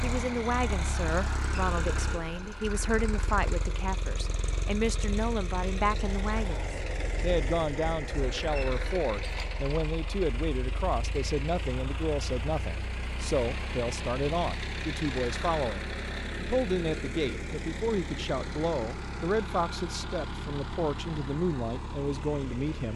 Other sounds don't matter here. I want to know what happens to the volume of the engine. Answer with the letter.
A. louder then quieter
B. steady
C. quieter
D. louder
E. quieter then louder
B.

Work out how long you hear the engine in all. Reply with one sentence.
The engine can be heard for 23 seconds in total.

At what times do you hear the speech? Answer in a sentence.
You can hear the speech from 0.0 to 22.9 s.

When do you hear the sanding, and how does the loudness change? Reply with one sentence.
The sanding can't be heard in this clip.